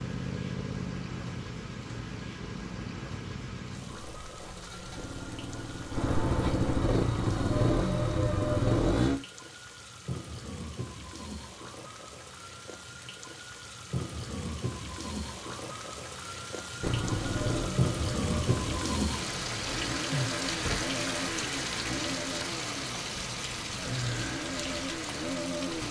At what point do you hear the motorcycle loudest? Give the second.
9 s.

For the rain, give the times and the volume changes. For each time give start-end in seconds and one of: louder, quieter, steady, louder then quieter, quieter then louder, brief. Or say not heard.
0.0-25.8 louder.